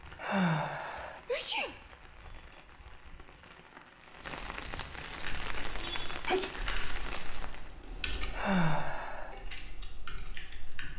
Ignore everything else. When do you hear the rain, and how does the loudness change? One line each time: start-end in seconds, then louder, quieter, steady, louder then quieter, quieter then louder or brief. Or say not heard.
0.0-7.7 louder.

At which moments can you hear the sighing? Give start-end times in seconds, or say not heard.
0.1-1.2, 8.3-9.3.